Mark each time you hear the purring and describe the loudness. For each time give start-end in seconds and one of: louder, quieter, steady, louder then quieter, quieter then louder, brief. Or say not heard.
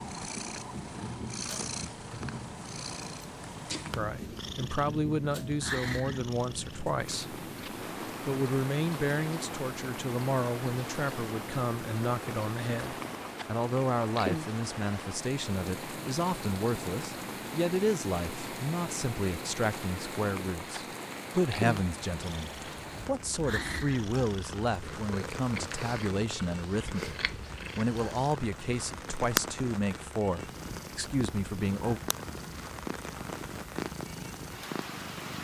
0.0-35.4 steady.